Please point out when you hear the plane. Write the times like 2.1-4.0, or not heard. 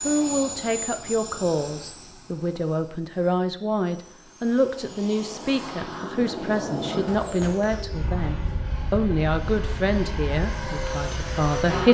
0.0-11.8.